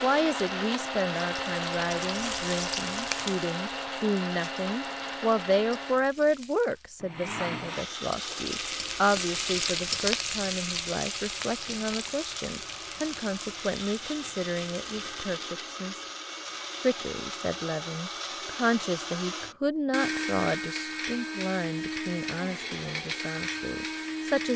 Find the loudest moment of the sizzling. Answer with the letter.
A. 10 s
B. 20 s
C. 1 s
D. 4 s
A.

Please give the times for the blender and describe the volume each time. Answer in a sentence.
You can hear the blender from 0.0 to 24.5 s, getting quieter then louder.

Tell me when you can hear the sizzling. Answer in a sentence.
You can hear the sizzling from 0.1 to 7.0 s and from 8.0 to 15.4 s.